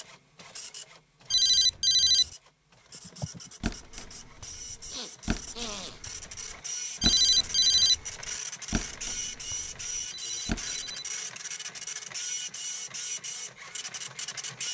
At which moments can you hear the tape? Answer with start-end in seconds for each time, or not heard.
not heard.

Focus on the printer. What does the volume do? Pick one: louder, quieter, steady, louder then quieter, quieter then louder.
louder.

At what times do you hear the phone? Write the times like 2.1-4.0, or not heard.
1.3-2.2, 7.0-8.0, 10.1-11.1.